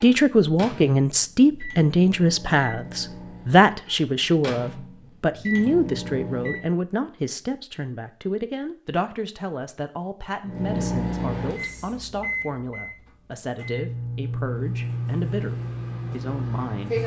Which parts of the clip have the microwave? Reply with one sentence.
You can hear the microwave from 0.0 to 6.7 s and from 10.4 to 17.0 s.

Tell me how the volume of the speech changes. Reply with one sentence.
The loudness of the speech goes down.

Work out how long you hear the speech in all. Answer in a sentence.
You can hear the speech for 17 seconds altogether.